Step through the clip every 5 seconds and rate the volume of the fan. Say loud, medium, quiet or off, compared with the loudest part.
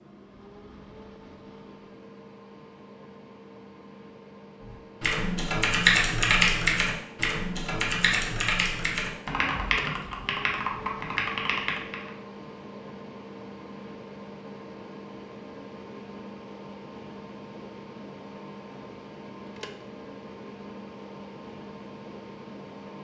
medium, loud, loud, loud, loud.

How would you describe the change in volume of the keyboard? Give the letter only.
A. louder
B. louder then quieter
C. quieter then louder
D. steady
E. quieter
E.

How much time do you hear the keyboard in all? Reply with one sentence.
The keyboard can be heard for 7 seconds in total.